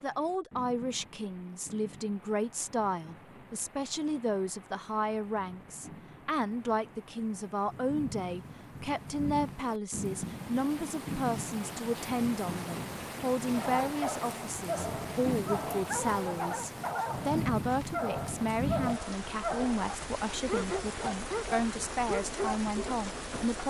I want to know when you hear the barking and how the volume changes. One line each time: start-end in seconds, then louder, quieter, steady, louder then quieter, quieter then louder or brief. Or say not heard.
13.5-22.9 steady.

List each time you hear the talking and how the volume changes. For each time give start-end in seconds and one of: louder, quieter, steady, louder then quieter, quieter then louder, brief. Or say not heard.
0.0-23.6 steady.